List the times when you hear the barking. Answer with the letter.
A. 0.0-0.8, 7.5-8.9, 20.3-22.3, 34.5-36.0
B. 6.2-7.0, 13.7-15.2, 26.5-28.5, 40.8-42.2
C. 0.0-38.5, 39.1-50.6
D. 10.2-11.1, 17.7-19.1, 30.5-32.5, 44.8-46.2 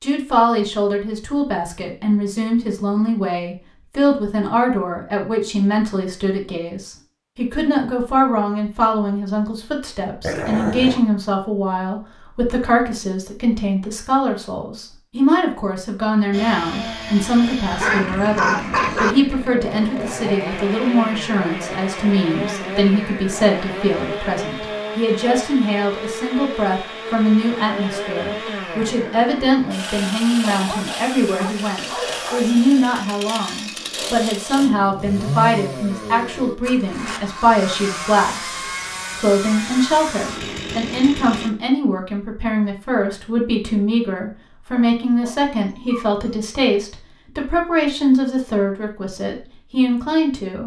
D.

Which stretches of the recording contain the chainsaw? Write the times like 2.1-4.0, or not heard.
16.3-41.5.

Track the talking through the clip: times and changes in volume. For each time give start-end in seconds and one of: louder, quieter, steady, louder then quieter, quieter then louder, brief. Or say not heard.
0.0-38.5 steady
39.1-50.6 steady.